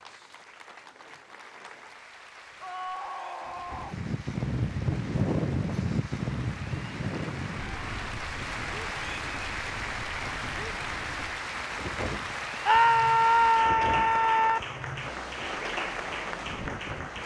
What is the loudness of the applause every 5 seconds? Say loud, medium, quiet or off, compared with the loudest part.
quiet, loud, loud, loud.